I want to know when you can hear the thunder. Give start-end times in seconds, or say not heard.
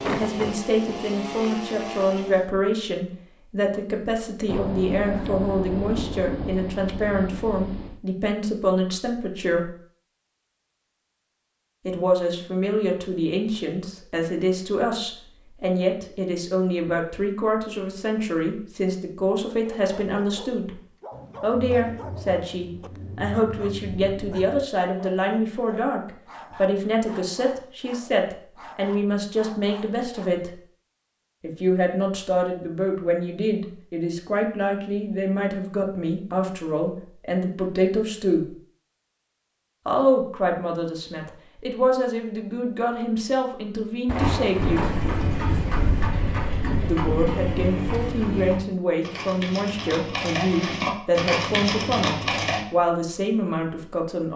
4.5-8.0, 21.1-24.6, 44.0-46.1.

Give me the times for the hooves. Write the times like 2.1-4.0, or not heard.
44.1-52.6.